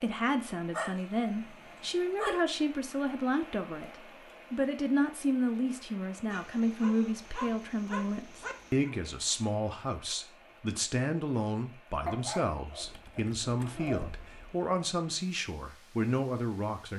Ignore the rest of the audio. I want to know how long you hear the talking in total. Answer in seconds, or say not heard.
17 s.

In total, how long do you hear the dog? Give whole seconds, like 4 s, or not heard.
6 s.